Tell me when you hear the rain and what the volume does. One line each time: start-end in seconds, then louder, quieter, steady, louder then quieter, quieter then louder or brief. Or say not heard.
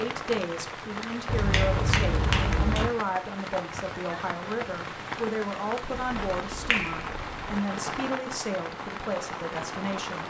0.0-10.2 steady.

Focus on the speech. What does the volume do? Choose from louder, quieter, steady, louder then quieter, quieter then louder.
steady.